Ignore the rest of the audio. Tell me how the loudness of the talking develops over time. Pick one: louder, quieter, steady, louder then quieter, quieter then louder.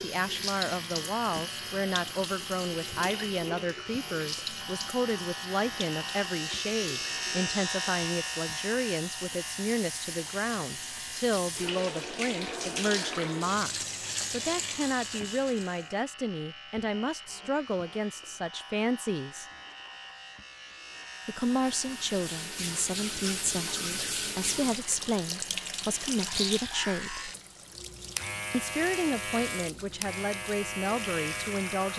steady.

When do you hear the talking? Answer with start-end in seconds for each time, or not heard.
0.0-19.4, 21.2-27.3, 28.5-31.9.